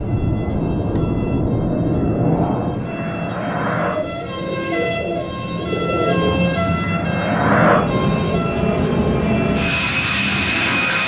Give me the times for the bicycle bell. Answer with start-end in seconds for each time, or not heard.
not heard.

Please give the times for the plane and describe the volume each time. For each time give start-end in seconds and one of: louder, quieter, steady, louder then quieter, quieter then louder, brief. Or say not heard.
0.0-11.0 quieter then louder.